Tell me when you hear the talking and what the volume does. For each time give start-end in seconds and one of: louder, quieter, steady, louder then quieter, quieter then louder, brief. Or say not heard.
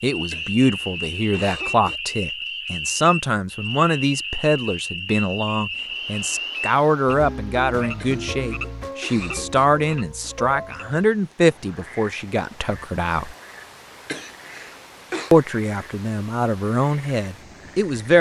0.0-13.3 steady
15.3-18.1 brief.